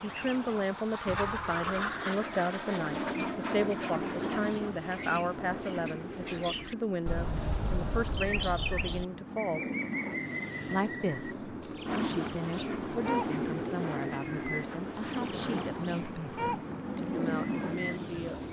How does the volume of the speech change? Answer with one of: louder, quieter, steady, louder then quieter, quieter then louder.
quieter.